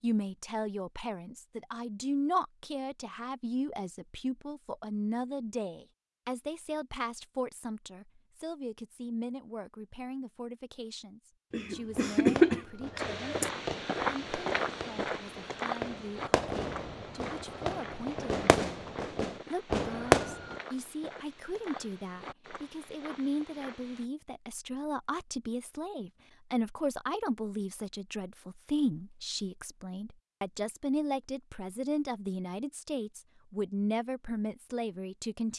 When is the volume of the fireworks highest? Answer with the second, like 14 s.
20 s.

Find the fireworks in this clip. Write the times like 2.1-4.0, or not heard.
11.9-20.6.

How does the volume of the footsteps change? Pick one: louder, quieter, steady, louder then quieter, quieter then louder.
quieter.